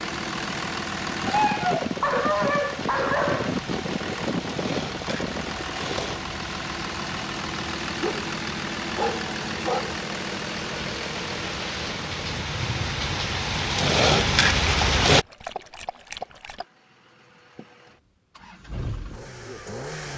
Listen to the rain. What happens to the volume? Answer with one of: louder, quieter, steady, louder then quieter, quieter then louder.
louder.